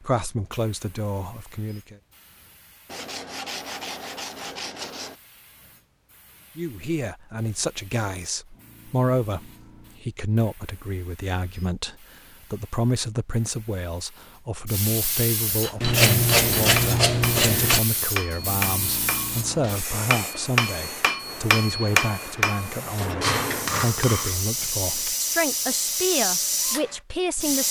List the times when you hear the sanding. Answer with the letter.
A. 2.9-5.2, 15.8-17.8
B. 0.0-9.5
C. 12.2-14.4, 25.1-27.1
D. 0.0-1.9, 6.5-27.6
A.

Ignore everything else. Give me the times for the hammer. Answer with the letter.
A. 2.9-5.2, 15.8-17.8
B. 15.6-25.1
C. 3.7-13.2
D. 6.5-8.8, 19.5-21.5
B.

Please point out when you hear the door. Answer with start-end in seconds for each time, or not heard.
not heard.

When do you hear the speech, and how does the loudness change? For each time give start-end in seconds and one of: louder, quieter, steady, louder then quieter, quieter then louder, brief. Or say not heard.
0.0-1.9 brief
6.5-27.6 steady.